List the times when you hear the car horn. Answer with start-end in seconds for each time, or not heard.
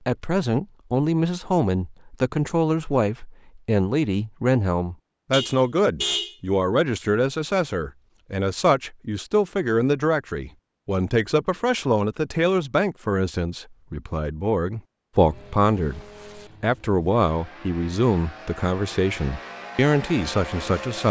5.3-6.3.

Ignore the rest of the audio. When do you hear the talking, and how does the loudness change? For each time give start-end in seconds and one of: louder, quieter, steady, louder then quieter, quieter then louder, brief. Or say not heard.
0.1-21.0 steady.